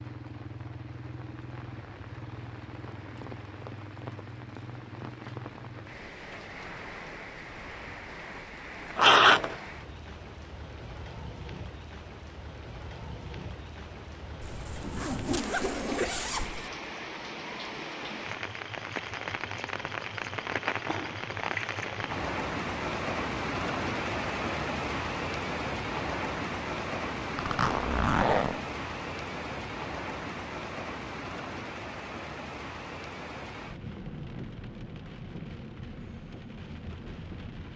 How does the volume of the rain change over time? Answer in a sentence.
The loudness of the rain goes up, then down.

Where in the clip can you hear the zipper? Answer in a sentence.
You can hear the zipper from 8.9 to 9.6 s, from 14.4 to 16.7 s and from 27.4 to 28.6 s.